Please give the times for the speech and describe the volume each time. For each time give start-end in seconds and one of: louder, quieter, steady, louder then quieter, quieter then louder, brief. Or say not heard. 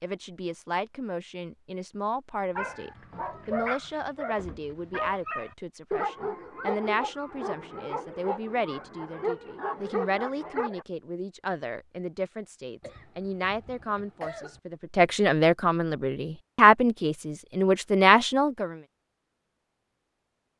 0.0-18.8 louder.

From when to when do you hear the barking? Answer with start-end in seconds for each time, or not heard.
2.5-10.8.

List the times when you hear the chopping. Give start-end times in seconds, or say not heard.
not heard.